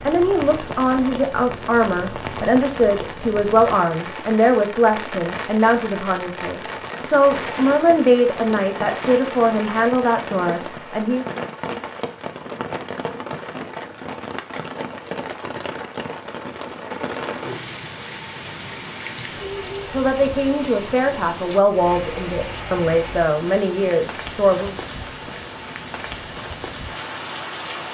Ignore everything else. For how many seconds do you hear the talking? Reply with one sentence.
The talking can be heard for 16 seconds in total.